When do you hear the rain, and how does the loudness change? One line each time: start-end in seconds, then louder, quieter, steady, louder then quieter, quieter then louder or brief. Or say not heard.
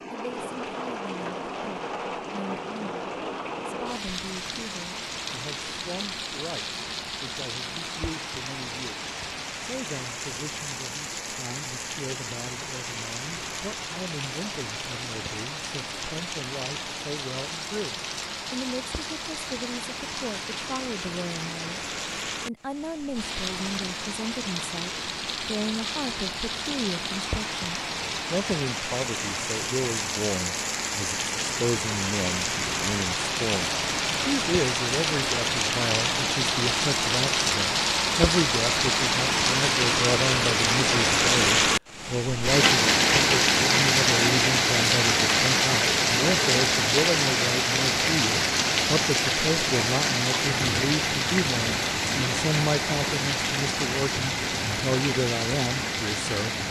0.0-56.6 louder.